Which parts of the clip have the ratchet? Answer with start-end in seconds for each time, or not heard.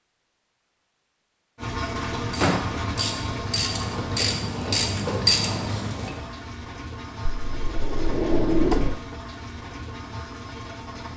2.4-6.2.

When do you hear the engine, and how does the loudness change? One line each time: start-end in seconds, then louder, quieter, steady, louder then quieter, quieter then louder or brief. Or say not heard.
1.6-11.1 quieter.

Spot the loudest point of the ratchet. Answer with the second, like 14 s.
5 s.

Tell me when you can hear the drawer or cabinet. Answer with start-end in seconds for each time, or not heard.
1.9-2.8, 7.2-9.0.